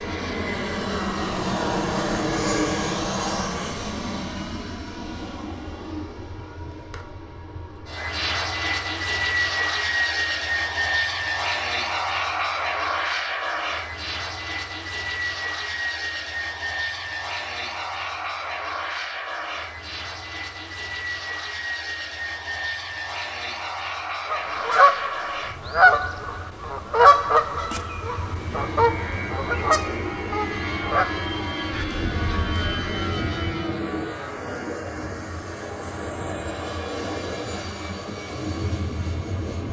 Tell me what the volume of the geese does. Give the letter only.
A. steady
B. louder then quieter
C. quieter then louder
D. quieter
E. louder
D.